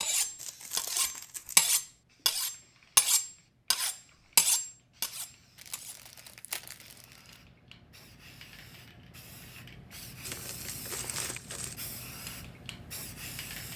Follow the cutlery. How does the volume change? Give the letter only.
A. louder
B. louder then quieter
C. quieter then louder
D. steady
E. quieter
B.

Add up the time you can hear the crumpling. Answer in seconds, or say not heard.
5 s.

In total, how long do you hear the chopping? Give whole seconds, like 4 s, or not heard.
not heard.